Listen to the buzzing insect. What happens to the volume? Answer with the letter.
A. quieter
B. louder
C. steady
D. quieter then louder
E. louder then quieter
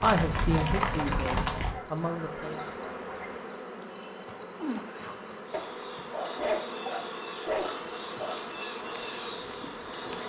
C.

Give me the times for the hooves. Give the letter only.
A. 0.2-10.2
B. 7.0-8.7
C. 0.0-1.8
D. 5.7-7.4
C.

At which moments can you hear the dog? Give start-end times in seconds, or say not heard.
1.4-3.4, 5.5-8.4.